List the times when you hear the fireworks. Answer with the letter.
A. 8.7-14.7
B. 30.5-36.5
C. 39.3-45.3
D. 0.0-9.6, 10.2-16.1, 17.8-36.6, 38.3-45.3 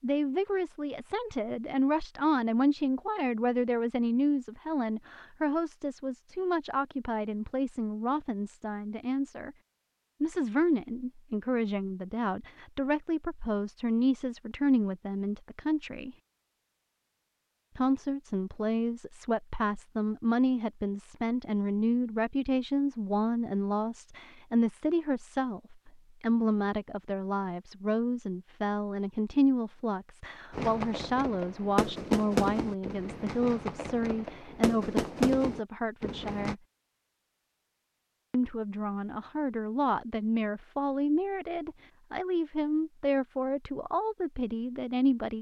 B.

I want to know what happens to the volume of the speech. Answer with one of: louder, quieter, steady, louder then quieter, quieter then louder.
steady.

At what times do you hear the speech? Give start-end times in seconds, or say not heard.
0.0-9.6, 10.2-16.1, 17.8-36.6, 38.3-45.3.